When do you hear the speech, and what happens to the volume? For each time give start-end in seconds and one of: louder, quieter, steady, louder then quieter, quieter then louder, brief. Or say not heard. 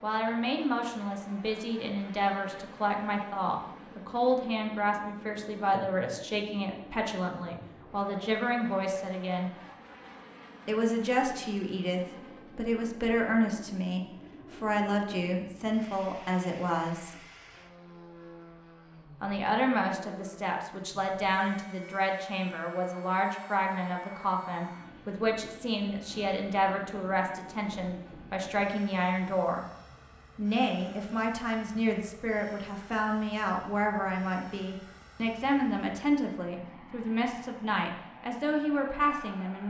0.0-9.6 steady
10.7-17.2 steady
19.2-29.6 steady
30.4-39.6 steady.